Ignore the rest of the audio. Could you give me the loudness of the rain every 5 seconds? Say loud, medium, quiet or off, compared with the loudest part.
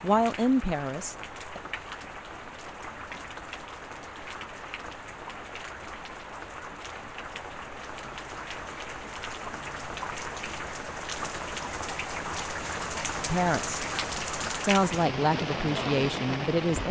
medium, medium, loud, loud.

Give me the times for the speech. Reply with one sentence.
The speech can be heard from 0.0 to 1.6 s, from 13.2 to 13.8 s and from 14.6 to 16.8 s.